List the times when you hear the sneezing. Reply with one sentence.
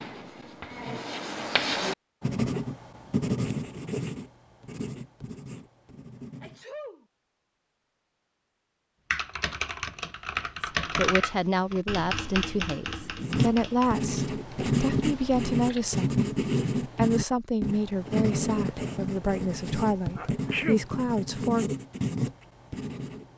The sneezing can be heard from 6.4 to 7.0 s and from 20.1 to 20.9 s.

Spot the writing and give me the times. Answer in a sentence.
The writing can be heard from 0.0 to 6.7 s and from 13.2 to 23.3 s.